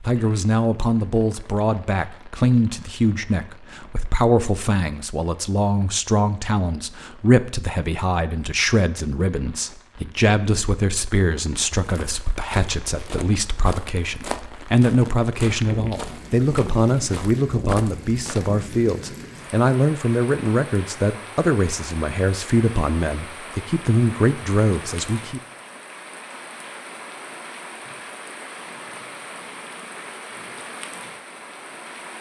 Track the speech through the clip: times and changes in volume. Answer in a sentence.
The speech can be heard from 0.0 to 25.4 s, at a steady volume.